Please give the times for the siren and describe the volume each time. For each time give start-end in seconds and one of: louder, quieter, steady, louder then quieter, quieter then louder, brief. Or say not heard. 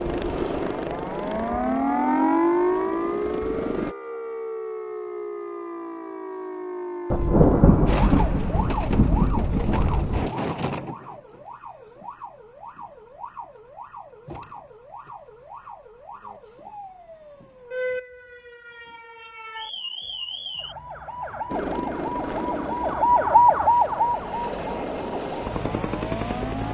0.0-26.6 quieter then louder.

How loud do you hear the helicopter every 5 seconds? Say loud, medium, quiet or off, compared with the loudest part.
loud, off, off, off, loud, loud.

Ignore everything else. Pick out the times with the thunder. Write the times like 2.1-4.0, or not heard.
7.1-10.3.